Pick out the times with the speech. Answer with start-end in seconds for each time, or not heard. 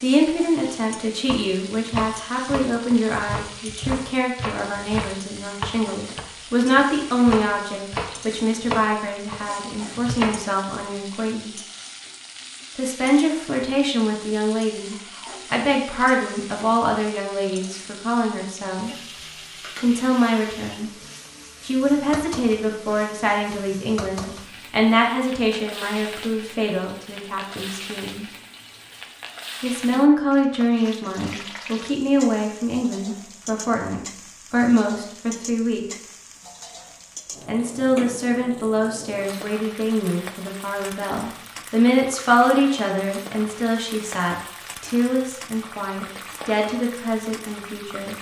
0.0-11.5, 12.8-18.9, 19.8-20.9, 21.6-28.2, 29.6-35.9, 37.5-48.1.